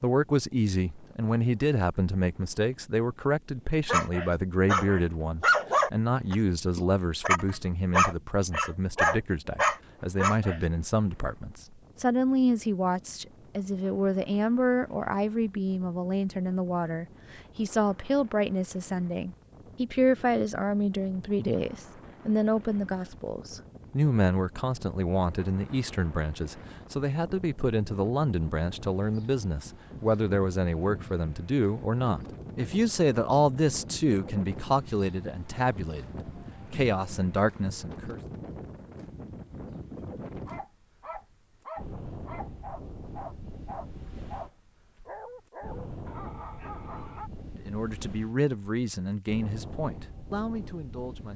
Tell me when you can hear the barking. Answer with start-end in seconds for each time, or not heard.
3.9-10.6, 40.5-47.3.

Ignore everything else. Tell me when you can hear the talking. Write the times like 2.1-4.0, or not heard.
0.0-38.2, 47.5-51.3.